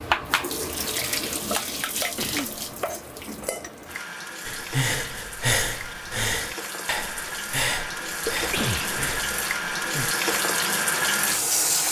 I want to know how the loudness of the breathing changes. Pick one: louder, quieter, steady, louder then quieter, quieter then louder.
quieter.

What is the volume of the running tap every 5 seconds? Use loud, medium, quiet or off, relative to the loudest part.
medium, medium, loud.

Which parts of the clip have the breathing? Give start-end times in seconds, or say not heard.
4.5-10.2.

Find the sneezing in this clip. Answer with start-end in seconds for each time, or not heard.
2.1-2.6, 8.2-9.6.